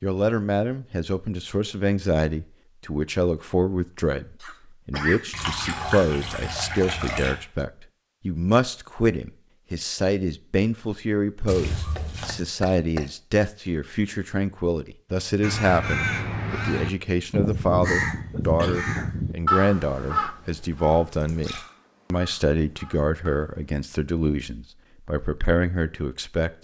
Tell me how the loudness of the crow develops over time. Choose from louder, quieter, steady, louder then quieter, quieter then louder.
quieter.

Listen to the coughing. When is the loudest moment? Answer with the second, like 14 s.
5 s.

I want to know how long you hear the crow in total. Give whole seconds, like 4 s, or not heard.
8 s.